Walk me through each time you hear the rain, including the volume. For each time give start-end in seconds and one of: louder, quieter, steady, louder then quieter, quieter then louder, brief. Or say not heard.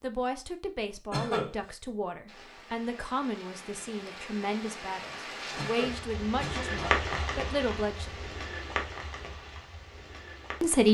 2.2-10.8 louder then quieter.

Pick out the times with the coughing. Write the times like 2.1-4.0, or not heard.
1.1-1.6, 5.5-7.3.